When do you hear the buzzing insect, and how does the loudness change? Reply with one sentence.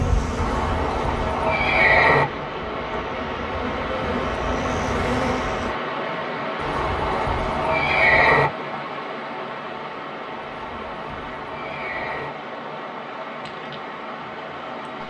You can hear the buzzing insect from 0.0 to 5.8 s, getting quieter then louder.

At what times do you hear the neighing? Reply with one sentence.
You can hear the neighing from 0.3 to 2.2 s, from 6.5 to 8.5 s and from 10.4 to 12.3 s.